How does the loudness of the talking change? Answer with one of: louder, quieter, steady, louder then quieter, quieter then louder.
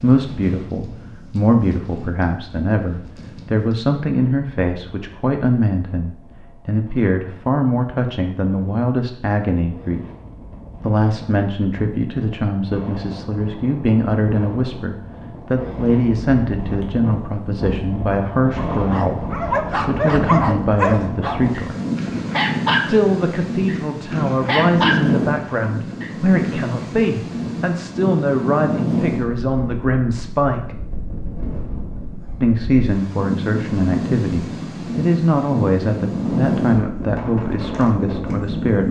steady.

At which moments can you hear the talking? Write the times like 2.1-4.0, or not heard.
0.0-10.1, 10.8-21.8, 22.9-30.8, 32.4-38.8.